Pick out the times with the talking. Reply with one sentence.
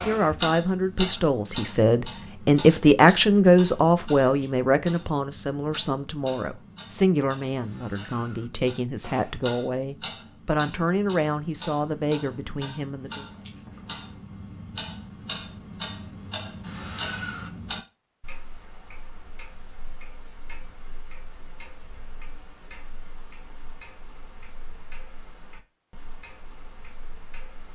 You can hear the talking from 0.0 to 13.2 s.